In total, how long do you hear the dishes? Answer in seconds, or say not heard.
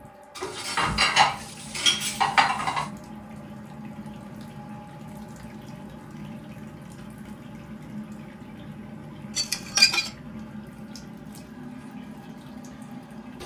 3 s.